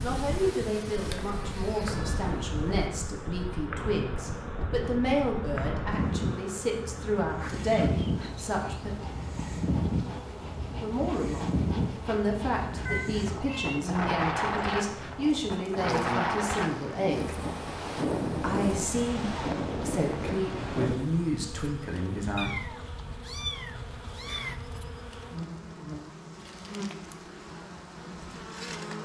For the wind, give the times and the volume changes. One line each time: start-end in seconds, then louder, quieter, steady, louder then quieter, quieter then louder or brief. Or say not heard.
0.0-21.0 louder.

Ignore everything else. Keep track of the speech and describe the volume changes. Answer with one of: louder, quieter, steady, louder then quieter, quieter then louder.
steady.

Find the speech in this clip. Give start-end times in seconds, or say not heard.
0.0-8.9, 10.7-17.4, 18.4-22.7.